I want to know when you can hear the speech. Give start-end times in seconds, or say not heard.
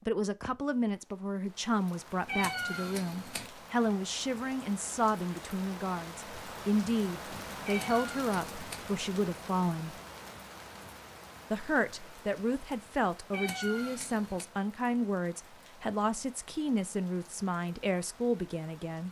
0.1-9.9, 11.5-19.0.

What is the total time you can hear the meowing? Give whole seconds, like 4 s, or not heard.
4 s.